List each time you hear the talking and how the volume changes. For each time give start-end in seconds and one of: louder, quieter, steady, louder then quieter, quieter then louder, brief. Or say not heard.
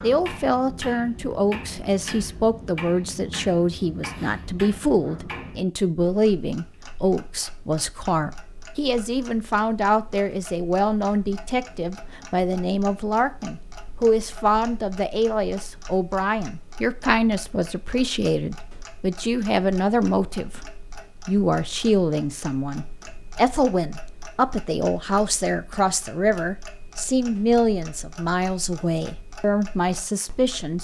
0.0-30.7 steady.